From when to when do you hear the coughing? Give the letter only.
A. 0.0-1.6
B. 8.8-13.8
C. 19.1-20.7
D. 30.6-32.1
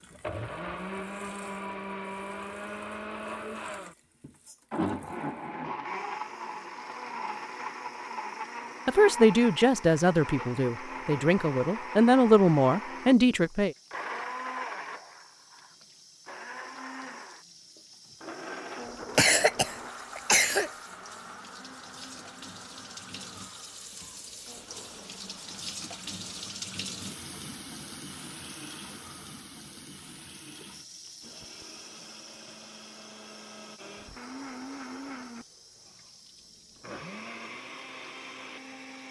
C.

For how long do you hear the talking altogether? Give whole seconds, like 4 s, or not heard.
5 s.